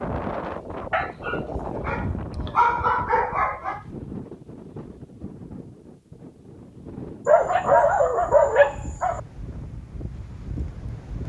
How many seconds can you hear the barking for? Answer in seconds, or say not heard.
5 s.